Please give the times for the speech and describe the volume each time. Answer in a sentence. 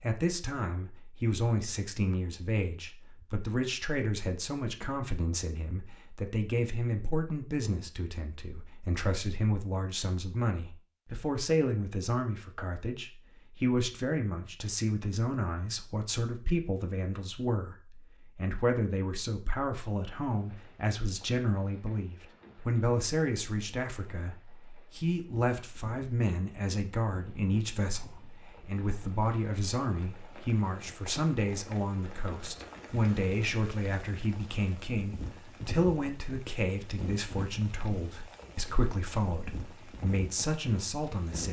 You can hear the speech from 0.0 to 41.4 s, at a steady volume.